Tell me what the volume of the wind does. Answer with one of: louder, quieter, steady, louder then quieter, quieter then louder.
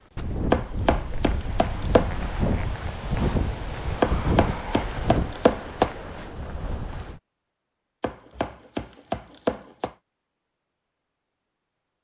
louder then quieter.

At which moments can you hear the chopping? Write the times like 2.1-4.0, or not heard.
0.5-2.1, 4.0-5.9, 8.0-9.9.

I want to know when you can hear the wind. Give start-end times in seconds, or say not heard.
0.1-7.2.